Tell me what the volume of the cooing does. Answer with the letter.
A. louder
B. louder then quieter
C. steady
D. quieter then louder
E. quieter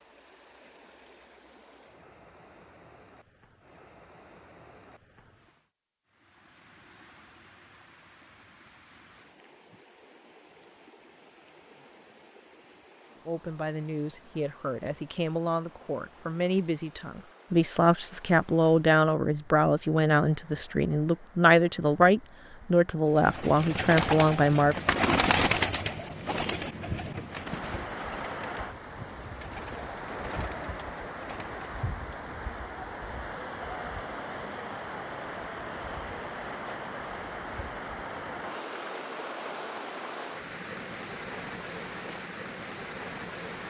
E.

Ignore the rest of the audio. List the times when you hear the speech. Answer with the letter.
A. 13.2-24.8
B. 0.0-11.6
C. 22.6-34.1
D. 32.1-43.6
A.